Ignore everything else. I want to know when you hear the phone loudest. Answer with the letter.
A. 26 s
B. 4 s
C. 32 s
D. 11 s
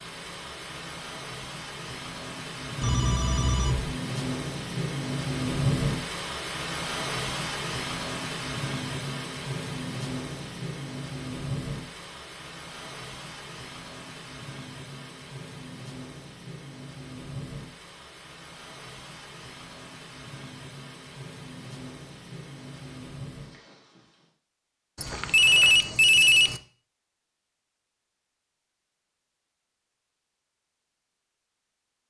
A.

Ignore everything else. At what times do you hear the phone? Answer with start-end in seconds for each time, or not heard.
2.8-3.9, 24.9-26.6.